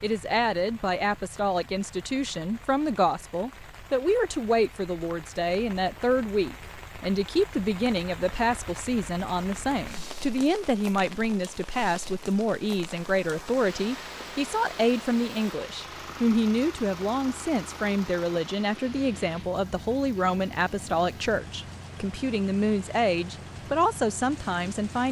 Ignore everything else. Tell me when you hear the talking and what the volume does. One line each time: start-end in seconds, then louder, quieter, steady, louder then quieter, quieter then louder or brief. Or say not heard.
0.0-25.0 steady.